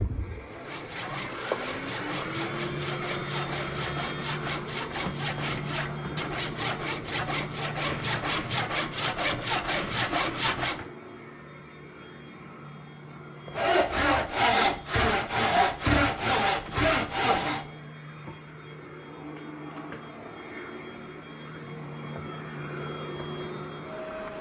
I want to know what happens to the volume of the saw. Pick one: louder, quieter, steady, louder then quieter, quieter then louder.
louder.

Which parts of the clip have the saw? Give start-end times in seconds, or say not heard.
0.5-10.8, 13.5-17.6.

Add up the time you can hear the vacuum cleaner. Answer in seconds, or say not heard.
24 s.